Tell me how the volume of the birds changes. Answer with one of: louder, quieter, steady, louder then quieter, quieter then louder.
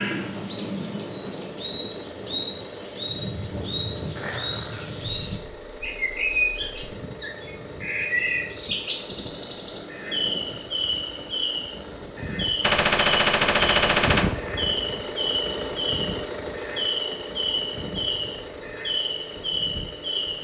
steady.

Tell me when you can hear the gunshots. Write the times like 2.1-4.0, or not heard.
12.6-14.3.